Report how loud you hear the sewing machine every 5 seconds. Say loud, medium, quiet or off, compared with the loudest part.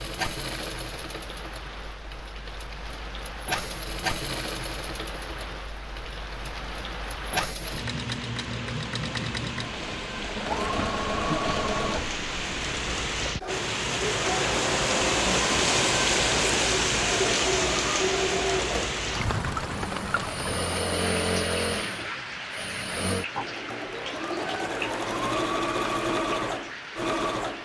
medium, medium, loud, loud, loud, loud.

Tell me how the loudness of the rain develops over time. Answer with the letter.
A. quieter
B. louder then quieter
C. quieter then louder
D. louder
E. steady
B.